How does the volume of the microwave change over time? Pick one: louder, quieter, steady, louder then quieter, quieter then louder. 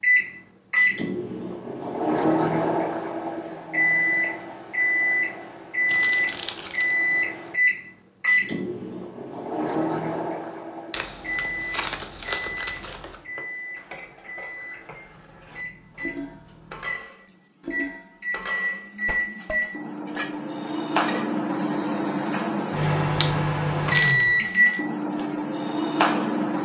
quieter then louder.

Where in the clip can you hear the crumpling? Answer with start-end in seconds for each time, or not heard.
5.8-7.0, 10.9-13.2, 23.9-24.8.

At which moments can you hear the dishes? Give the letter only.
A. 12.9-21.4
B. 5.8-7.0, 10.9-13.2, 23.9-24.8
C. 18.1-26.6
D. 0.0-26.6
A.